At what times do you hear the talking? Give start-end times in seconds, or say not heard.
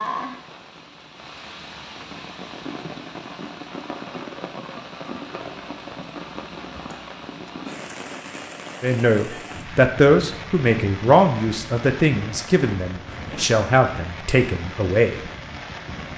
8.8-15.2.